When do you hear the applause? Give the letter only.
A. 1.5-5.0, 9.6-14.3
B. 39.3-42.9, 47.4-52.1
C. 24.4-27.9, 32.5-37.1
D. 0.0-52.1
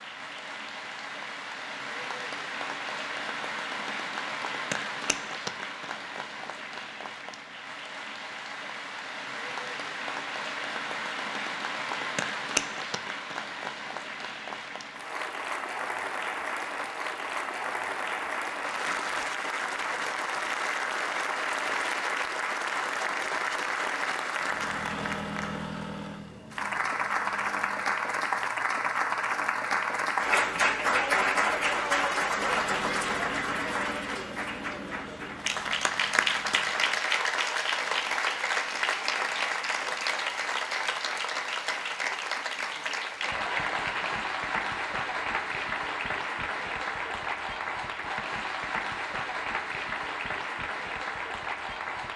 D.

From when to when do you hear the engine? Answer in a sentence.
You can hear the engine from 24.4 to 27.9 s and from 32.5 to 37.1 s.